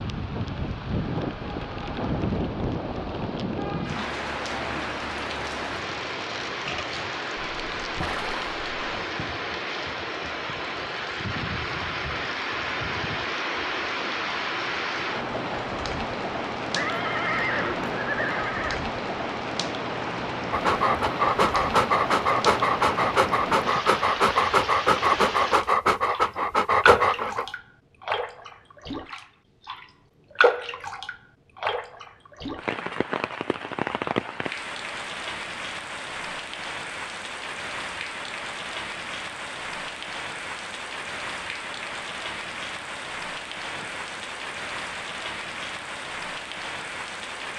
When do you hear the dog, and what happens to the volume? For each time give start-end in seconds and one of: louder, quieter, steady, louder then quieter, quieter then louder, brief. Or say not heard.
20.5-27.4 steady.